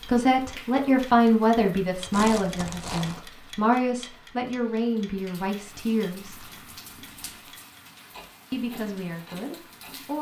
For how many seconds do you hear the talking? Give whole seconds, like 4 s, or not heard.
8 s.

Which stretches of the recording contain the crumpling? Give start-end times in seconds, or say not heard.
2.1-3.2, 6.2-7.6.